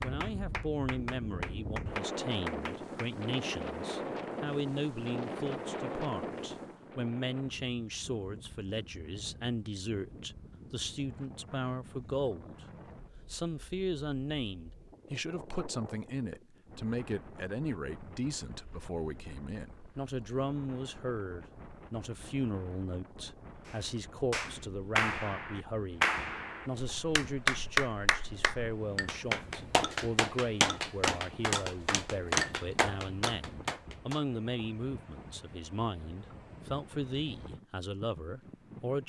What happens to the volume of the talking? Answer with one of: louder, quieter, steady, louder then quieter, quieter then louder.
steady.